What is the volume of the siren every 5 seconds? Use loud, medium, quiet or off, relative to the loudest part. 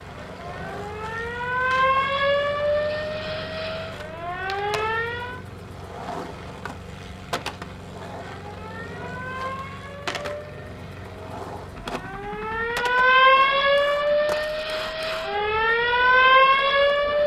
medium, quiet, loud, loud.